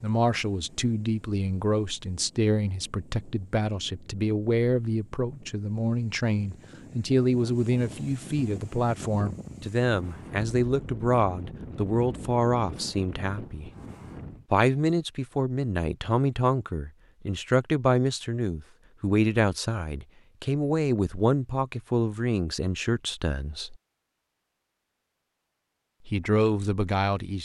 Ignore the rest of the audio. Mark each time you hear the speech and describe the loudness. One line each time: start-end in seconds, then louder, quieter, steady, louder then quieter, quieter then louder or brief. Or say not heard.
0.0-13.7 steady
14.5-23.8 steady
26.1-27.4 brief.